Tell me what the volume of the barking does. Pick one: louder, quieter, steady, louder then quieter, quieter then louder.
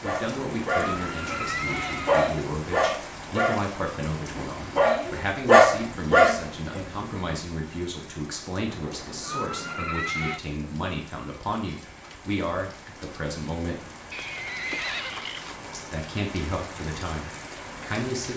louder.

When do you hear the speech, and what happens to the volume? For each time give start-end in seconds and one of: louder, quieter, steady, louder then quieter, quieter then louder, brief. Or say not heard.
0.0-13.8 steady
15.7-18.3 brief.